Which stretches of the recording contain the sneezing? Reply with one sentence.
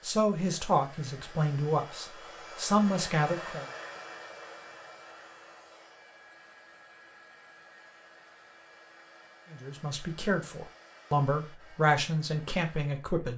The sneezing can't be heard in this clip.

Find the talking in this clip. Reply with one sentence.
You can hear the talking from 0.0 to 3.6 s and from 9.5 to 13.3 s.